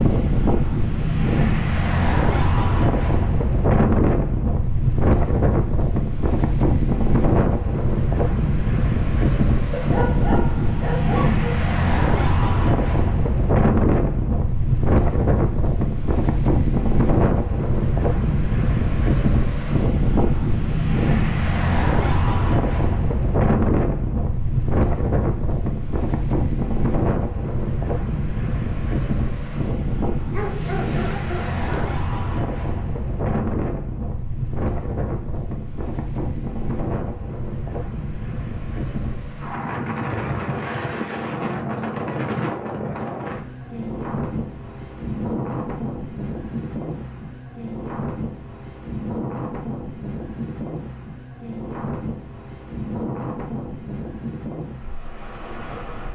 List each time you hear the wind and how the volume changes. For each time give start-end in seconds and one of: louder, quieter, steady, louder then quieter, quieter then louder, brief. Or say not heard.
0.0-56.1 quieter.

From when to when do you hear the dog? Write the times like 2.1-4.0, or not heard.
9.7-11.7, 30.3-31.9.